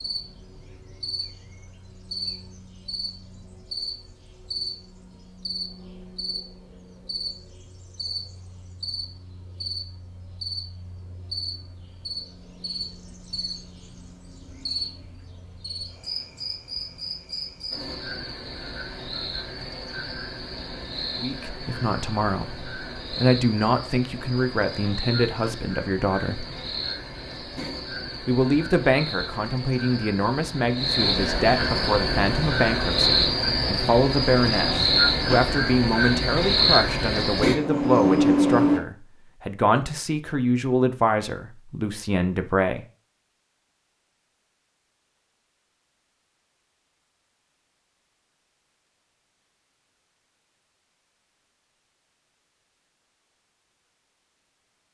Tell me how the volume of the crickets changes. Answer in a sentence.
The loudness of the crickets goes up.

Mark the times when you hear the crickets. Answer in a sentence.
You can hear the crickets from 0.0 to 38.8 s.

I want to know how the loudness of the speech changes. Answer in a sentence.
The volume of the speech stays about the same.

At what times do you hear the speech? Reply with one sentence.
The speech can be heard from 21.2 to 26.4 s and from 28.2 to 42.9 s.